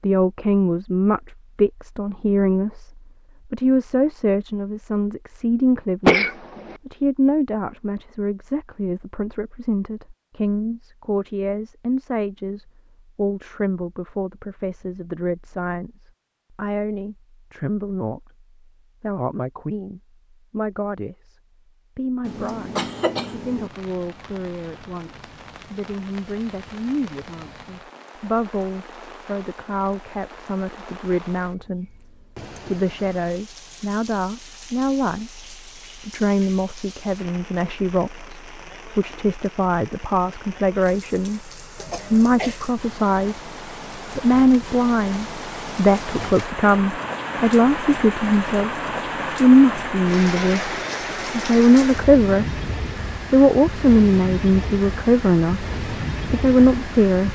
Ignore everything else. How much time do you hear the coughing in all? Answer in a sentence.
The coughing can be heard for 3 seconds in total.